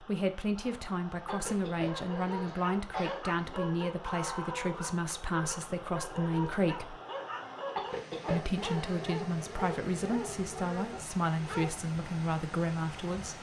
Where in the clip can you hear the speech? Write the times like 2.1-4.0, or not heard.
0.0-7.0, 8.3-13.3.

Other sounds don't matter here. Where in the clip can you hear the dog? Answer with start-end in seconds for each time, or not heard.
1.2-11.8.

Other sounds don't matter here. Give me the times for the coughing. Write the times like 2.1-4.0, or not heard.
1.2-3.2, 7.8-9.1.